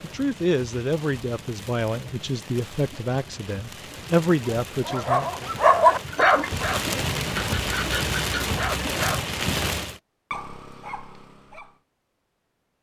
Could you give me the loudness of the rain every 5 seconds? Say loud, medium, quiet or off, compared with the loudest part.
quiet, loud, off.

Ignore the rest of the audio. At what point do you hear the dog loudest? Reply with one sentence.
The loudest moment of the dog is at 6 seconds.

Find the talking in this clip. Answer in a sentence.
You can hear the talking from 0.0 to 5.5 s.